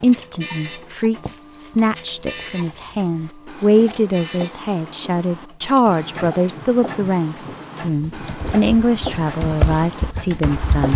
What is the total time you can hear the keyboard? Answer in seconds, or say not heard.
3 s.